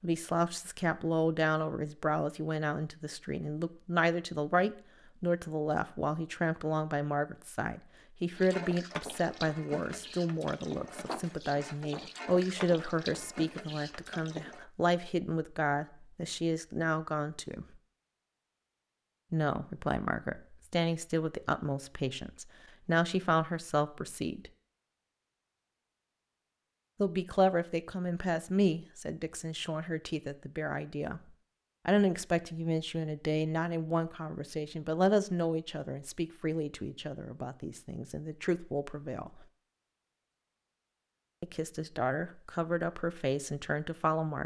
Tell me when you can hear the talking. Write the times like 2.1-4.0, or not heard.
0.0-17.6, 19.3-24.5, 27.0-31.2, 31.9-39.5, 41.4-44.4.